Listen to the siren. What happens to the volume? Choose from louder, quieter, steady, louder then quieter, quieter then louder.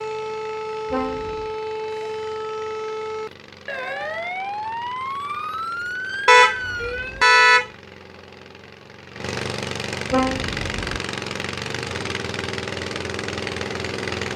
steady.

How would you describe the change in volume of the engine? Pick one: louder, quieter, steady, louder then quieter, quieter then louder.
louder.